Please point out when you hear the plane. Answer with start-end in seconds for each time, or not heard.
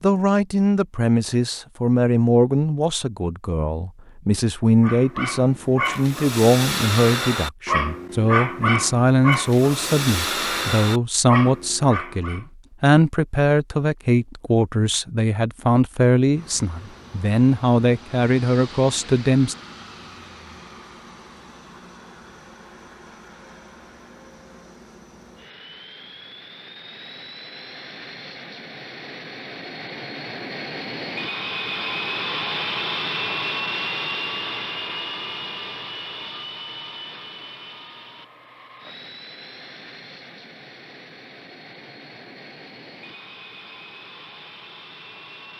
16.3-45.5.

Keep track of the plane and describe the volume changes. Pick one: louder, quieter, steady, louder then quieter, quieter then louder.
louder then quieter.